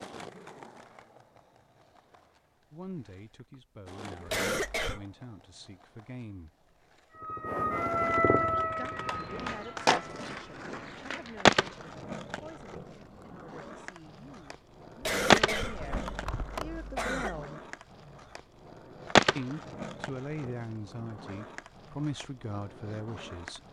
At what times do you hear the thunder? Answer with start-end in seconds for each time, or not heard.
not heard.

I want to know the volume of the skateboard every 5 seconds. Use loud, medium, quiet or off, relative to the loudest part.
quiet, medium, loud, loud, quiet.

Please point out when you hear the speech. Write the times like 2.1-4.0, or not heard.
2.7-6.5, 8.2-17.6, 19.4-23.6.